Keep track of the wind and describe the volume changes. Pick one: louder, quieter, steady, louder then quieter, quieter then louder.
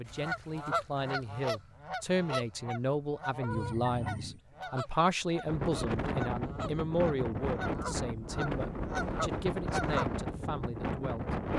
steady.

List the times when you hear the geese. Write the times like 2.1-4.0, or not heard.
0.1-10.2.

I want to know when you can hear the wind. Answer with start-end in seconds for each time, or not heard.
5.5-11.5.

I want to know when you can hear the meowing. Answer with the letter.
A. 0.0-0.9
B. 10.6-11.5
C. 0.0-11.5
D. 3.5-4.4
D.